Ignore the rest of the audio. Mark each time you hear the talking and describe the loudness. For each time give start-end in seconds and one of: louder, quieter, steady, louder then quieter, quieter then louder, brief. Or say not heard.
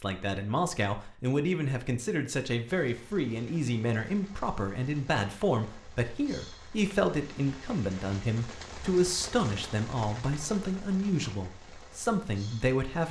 0.0-13.0 steady.